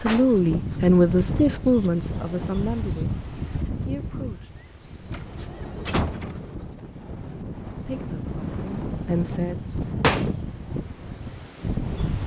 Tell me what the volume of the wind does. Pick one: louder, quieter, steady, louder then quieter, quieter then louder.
quieter then louder.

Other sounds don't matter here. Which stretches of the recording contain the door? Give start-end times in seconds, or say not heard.
0.1-0.5, 5.1-6.5, 9.8-10.3.